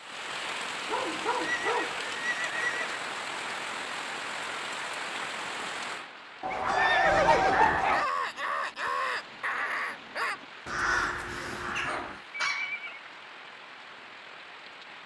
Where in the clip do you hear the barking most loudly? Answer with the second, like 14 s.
8 s.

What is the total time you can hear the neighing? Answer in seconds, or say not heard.
4 s.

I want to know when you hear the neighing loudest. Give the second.
7 s.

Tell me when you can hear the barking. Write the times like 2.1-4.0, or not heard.
0.8-2.0, 6.5-8.1, 11.4-12.7.